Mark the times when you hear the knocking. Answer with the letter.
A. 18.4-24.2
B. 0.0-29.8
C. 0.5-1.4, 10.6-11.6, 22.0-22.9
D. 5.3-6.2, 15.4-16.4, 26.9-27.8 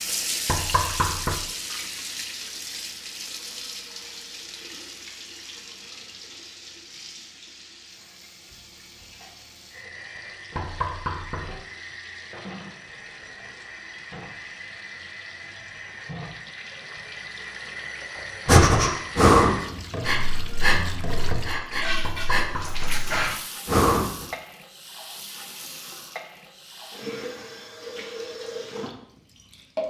C.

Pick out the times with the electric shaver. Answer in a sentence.
You can't hear the electric shaver here.